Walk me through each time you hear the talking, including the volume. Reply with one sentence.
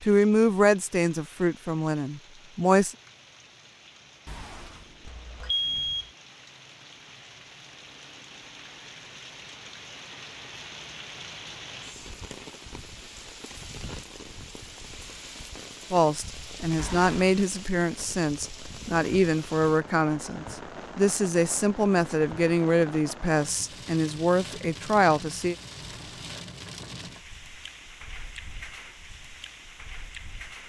You can hear the talking briefly from 0.0 to 3.0 s; and from 15.9 to 25.6 s, at a steady volume.